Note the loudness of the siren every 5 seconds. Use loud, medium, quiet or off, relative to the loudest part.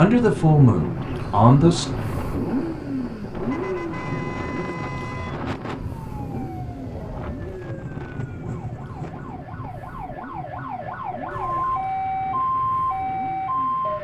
off, quiet, loud.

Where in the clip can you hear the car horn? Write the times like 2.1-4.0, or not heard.
3.4-5.3, 11.3-11.9.